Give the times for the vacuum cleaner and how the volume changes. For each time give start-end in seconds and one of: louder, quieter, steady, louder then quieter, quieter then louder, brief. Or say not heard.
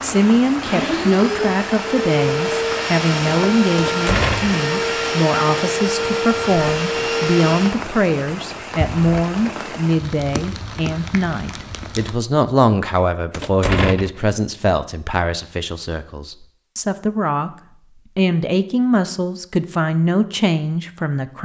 0.0-7.8 steady.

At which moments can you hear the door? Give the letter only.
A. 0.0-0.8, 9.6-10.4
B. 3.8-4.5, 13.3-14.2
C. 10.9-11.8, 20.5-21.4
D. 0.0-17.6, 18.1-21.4
B.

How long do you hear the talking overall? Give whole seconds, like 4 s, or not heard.
21 s.